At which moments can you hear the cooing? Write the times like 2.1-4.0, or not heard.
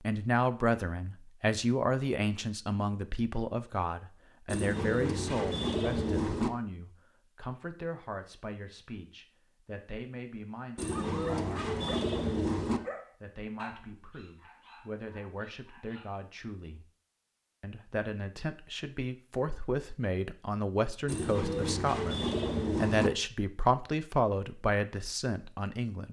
4.5-6.5, 10.8-12.8, 21.1-23.1.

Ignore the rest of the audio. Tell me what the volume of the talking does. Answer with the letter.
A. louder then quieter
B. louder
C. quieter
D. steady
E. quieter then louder
E.